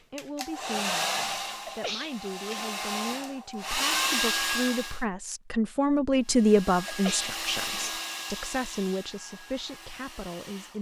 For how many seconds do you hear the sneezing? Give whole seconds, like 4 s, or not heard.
2 s.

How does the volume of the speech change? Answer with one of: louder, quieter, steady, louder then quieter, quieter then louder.
louder then quieter.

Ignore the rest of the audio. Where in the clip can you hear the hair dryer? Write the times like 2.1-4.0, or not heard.
0.1-5.0, 6.2-10.7.